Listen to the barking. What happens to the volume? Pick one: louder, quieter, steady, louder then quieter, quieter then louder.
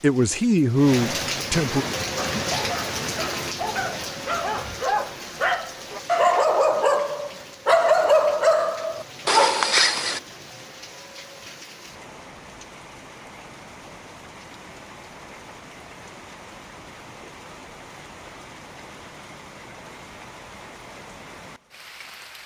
louder.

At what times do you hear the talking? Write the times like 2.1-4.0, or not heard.
0.0-1.9.